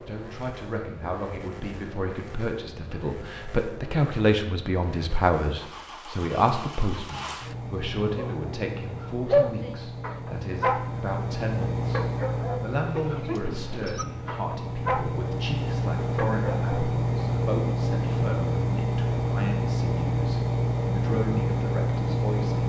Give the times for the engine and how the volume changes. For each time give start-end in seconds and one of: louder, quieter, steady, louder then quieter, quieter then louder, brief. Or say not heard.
0.0-22.6 louder.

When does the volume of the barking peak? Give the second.
9 s.